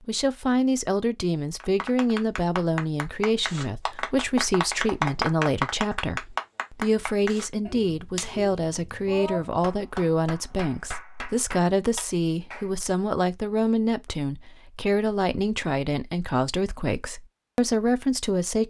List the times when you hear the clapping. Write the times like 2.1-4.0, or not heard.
1.6-12.7.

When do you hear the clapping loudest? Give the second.
5 s.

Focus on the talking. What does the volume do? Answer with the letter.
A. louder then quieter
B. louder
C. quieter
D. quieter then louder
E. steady
E.